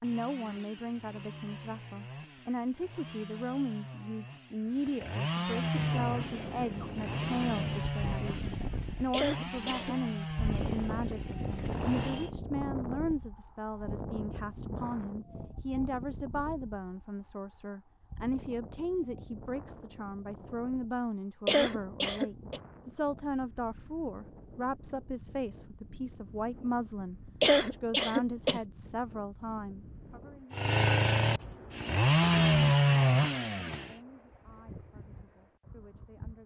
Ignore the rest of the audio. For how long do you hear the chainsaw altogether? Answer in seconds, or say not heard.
16 s.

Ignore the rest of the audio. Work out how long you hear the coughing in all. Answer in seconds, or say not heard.
3 s.